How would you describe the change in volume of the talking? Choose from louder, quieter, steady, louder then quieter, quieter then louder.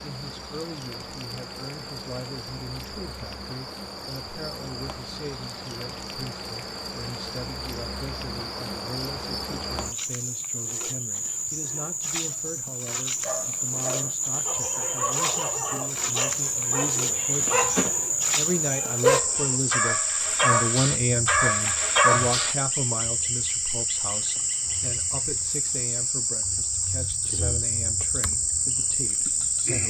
louder then quieter.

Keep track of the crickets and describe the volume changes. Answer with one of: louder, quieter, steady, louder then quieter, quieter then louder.
louder.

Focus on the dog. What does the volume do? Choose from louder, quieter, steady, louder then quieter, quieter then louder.
louder.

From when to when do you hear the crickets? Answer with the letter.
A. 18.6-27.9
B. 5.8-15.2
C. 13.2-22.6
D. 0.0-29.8
D.